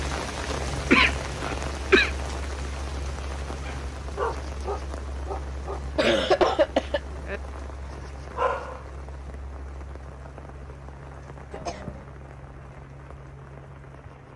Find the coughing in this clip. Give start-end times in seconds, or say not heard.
0.9-2.1, 6.0-7.0, 11.5-12.1.